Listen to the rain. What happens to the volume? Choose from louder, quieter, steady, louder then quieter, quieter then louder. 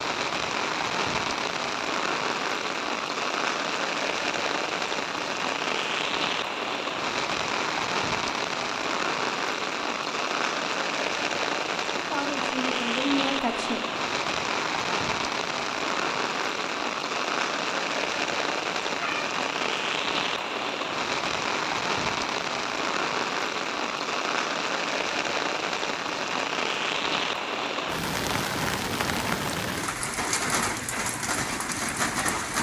steady.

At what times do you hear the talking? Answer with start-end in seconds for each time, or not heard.
11.9-13.8.